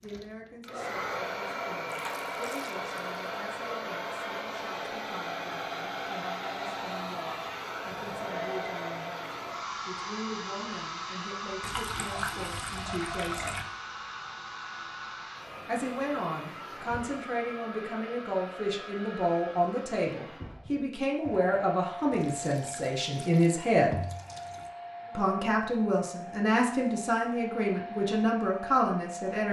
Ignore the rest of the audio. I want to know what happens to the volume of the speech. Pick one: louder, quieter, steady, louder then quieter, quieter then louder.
louder.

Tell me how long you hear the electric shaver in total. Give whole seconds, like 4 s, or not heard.
not heard.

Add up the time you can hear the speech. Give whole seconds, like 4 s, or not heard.
26 s.